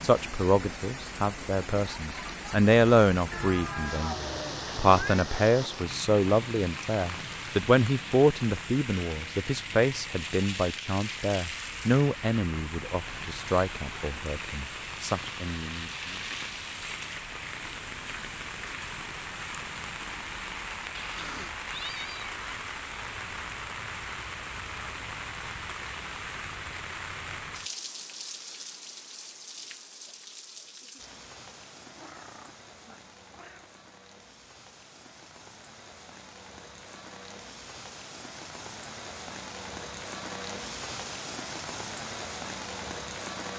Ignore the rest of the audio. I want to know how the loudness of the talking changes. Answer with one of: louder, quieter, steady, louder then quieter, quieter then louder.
quieter.